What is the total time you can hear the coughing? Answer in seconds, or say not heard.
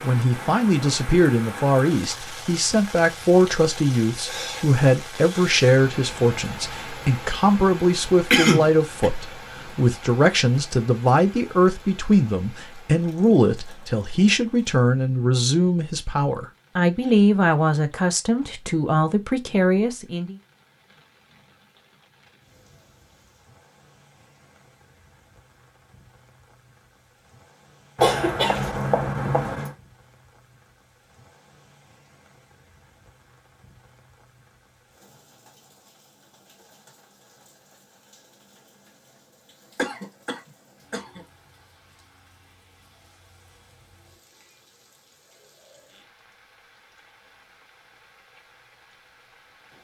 4 s.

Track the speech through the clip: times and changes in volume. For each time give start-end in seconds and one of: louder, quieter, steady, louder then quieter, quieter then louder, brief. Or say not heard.
0.0-20.4 steady.